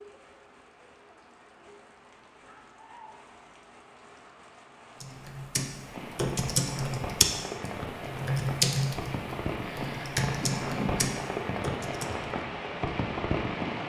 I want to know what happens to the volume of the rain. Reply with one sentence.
The loudness of the rain goes up.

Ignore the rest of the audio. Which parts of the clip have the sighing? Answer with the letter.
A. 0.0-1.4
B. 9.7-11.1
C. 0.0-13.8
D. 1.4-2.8
B.